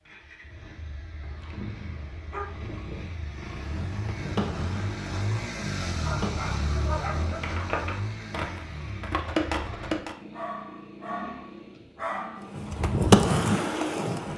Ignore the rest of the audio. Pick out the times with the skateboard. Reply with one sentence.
The skateboard can be heard from 3.5 to 10.2 s and from 12.6 to 14.3 s.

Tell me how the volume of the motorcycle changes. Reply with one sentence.
The loudness of the motorcycle goes up, then down.